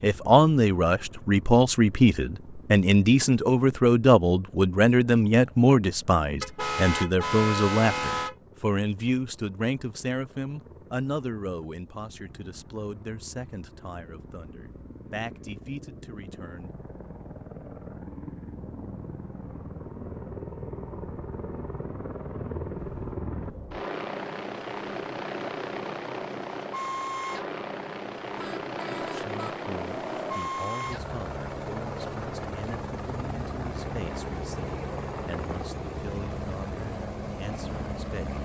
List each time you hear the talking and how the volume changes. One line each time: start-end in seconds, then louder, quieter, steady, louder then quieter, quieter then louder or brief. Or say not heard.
0.0-16.9 quieter
29.1-38.3 steady.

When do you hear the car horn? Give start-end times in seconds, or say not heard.
6.4-8.3, 28.4-30.4.